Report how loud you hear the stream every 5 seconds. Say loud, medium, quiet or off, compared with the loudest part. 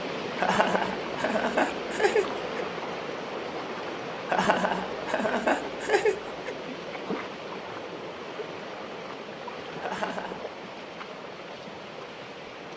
loud, loud, medium.